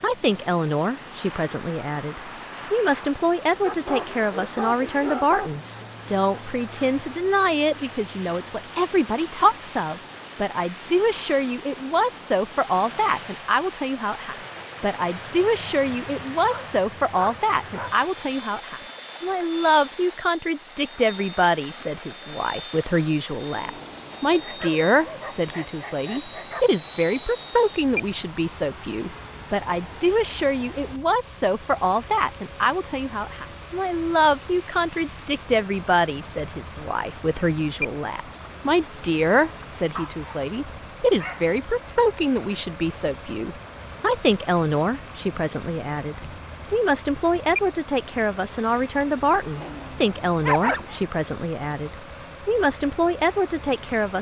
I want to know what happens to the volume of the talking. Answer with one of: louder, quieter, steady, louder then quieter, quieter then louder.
steady.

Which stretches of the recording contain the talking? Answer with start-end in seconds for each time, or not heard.
0.0-54.1.